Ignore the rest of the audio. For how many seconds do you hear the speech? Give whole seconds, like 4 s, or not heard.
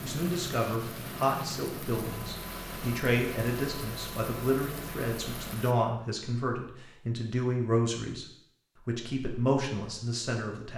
10 s.